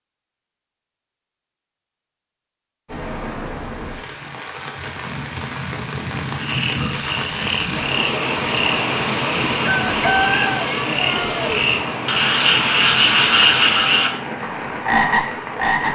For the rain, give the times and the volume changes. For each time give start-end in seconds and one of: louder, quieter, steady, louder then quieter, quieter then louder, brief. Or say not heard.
2.9-15.8 louder then quieter.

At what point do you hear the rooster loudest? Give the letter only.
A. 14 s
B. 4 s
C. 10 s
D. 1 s
C.